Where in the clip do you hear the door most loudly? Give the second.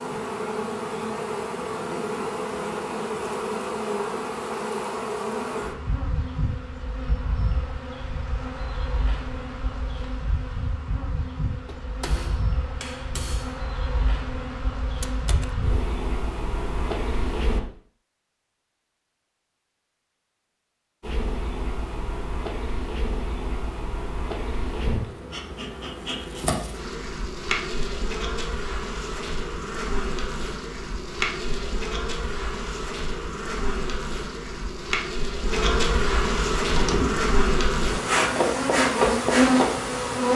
37 s.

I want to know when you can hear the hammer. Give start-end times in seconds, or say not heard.
11.7-13.8.